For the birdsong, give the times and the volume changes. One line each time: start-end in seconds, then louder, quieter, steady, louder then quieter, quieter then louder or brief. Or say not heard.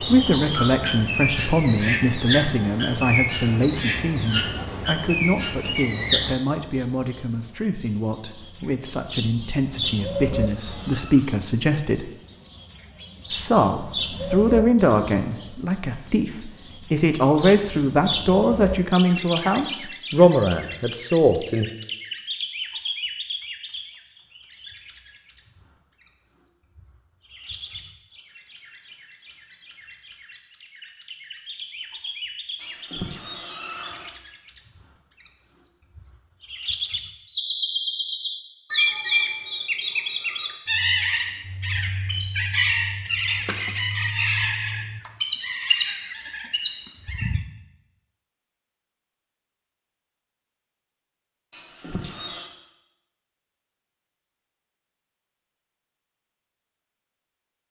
0.0-47.5 quieter then louder.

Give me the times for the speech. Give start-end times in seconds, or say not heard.
0.0-12.1, 13.3-21.7.